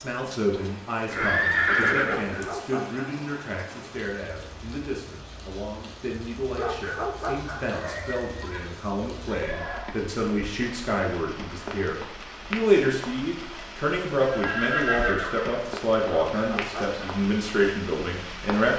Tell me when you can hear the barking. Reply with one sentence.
You can hear the barking from 2.0 to 3.2 s, from 6.5 to 7.7 s and from 16.3 to 17.1 s.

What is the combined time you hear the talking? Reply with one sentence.
You can hear the talking for 19 seconds altogether.